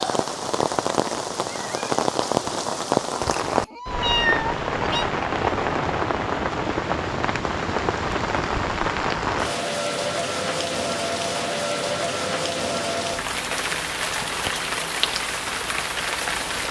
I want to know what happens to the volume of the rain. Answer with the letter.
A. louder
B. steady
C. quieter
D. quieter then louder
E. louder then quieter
B.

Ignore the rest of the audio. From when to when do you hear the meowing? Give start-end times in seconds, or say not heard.
3.6-5.0.